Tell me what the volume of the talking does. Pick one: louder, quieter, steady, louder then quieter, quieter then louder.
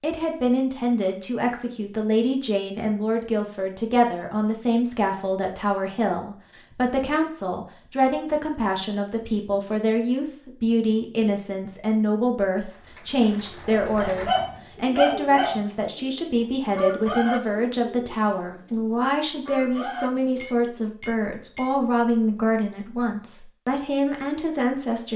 steady.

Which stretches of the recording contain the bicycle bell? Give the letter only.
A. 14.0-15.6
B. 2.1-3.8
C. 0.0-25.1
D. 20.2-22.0
D.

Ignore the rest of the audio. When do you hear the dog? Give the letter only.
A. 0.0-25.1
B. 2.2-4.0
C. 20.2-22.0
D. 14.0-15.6
D.